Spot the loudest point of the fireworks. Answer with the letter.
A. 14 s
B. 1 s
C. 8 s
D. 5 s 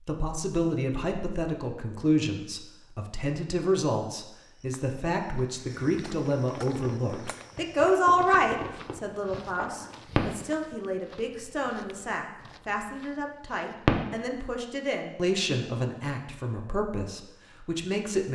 A.